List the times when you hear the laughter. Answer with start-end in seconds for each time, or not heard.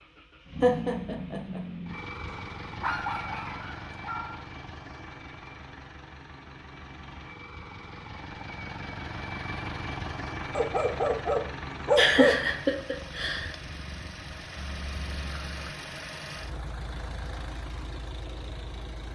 0.6-1.6, 11.9-13.5.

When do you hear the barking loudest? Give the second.
12 s.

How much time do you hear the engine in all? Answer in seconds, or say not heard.
19 s.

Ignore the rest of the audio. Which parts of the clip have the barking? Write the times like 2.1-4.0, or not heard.
2.2-4.5, 10.6-12.5.